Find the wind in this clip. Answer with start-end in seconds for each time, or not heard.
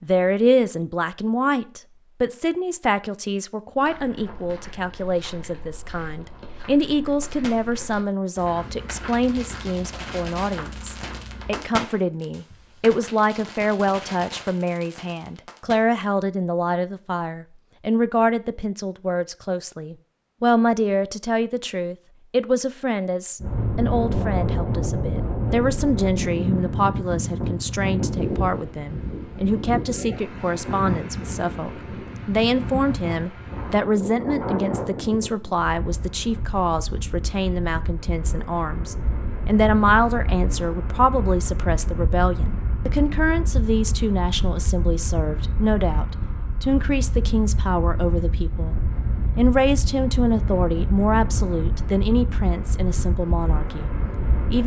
23.4-54.6.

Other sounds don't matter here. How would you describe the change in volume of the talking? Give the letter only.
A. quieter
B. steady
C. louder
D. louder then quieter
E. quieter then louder
B.